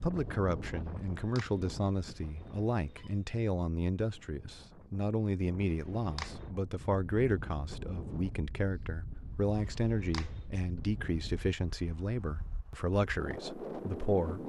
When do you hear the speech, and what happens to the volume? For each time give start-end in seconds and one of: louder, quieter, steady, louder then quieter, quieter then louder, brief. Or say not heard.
0.0-14.4 steady.